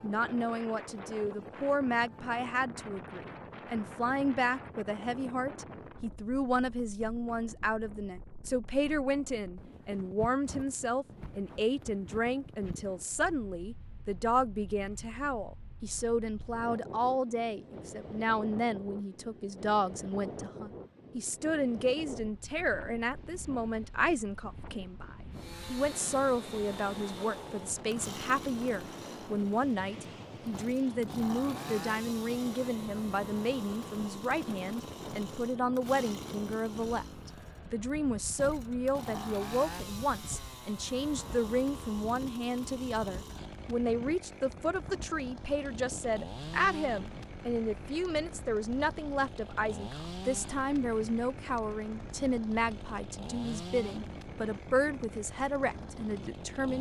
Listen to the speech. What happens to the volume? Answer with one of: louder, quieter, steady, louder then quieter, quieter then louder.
steady.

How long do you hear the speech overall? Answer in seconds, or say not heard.
57 s.